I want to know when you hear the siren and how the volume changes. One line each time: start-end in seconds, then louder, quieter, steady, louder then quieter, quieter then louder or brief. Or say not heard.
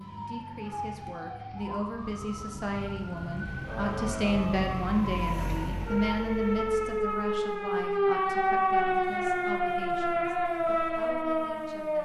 0.0-12.0 louder.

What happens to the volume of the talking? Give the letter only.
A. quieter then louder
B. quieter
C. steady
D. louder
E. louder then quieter
E.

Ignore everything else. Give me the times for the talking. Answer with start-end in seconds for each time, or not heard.
0.0-12.0.